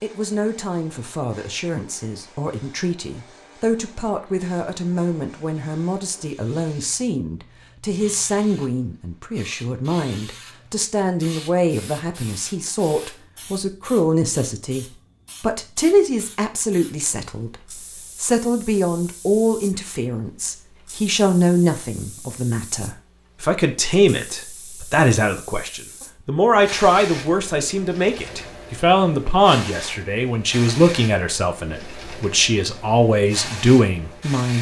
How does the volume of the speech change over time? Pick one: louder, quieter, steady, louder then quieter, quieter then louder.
louder.